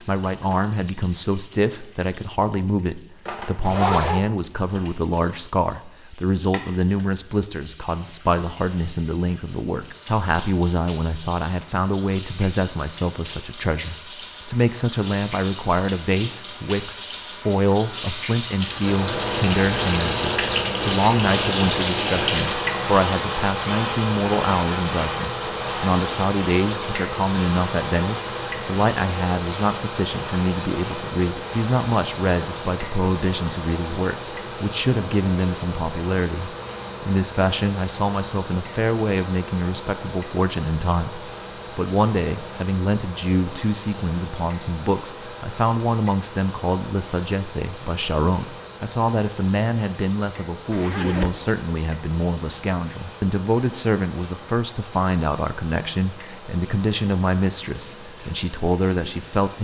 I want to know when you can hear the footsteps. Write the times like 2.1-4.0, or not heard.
not heard.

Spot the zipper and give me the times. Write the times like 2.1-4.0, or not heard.
3.6-4.2, 50.7-51.5.